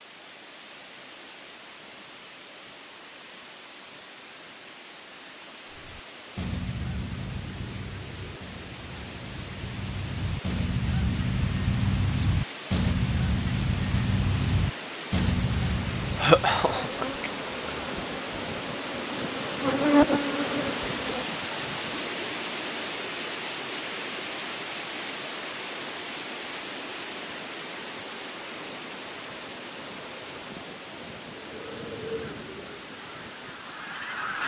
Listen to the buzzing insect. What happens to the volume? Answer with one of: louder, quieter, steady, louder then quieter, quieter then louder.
louder then quieter.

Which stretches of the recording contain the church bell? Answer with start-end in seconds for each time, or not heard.
not heard.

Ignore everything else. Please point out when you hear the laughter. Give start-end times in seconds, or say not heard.
16.1-17.7.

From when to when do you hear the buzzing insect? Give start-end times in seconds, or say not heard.
16.6-21.2.